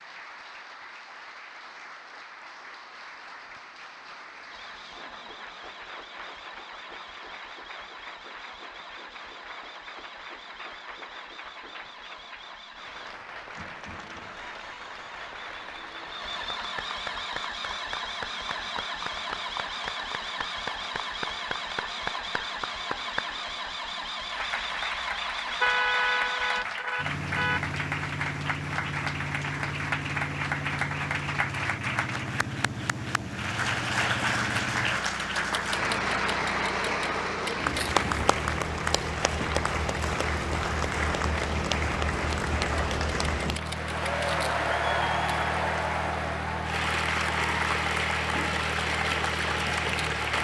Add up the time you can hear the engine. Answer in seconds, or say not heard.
46 s.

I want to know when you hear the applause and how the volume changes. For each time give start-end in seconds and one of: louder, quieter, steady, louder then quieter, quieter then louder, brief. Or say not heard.
0.0-50.3 louder.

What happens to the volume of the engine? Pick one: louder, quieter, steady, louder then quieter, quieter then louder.
louder.